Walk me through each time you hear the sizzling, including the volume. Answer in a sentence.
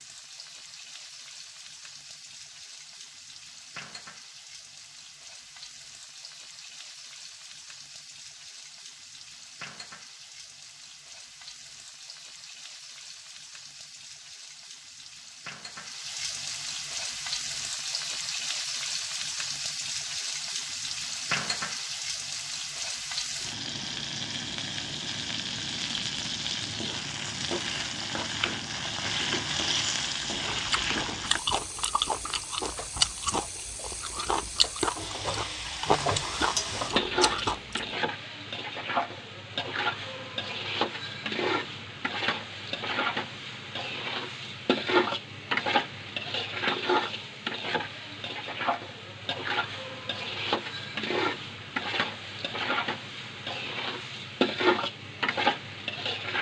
You can hear the sizzling from 0.0 to 56.3 s, getting louder.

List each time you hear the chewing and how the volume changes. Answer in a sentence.
The chewing can be heard from 30.4 to 37.9 s, at a steady volume.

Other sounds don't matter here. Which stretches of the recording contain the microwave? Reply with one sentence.
You can't hear the microwave here.